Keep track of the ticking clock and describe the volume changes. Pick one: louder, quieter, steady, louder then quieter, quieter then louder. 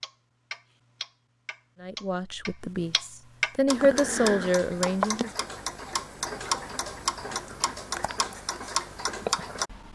louder.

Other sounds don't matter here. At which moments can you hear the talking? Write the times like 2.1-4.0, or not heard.
1.8-5.3.